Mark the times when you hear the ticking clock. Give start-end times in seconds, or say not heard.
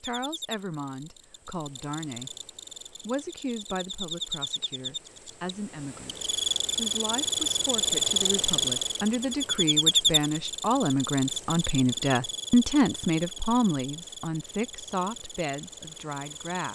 not heard.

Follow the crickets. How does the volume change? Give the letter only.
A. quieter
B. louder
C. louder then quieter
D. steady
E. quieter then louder
C.